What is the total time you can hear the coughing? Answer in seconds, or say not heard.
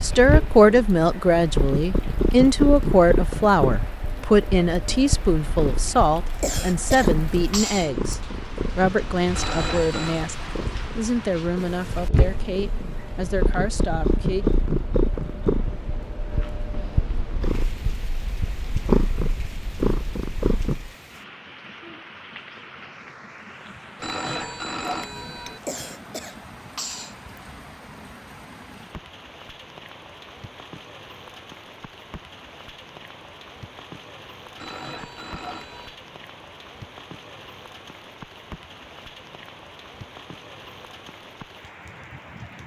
3 s.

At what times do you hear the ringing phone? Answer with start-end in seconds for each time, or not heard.
9.3-10.3, 23.9-25.6, 34.5-36.0.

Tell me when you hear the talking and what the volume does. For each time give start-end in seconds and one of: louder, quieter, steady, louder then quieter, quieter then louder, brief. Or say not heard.
0.0-14.4 quieter.